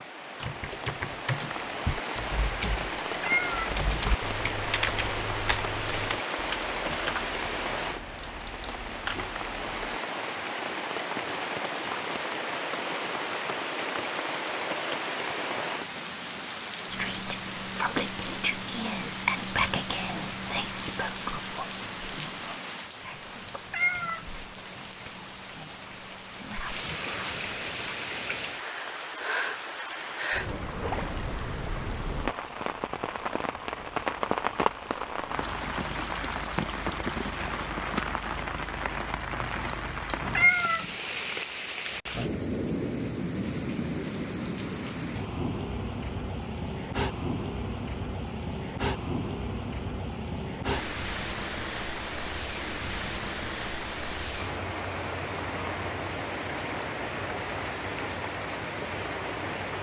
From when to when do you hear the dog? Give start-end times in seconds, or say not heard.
not heard.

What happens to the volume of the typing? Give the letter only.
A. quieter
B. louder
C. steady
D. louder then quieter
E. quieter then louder
A.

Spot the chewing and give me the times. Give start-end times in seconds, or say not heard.
not heard.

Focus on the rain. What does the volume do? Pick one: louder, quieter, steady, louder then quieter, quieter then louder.
steady.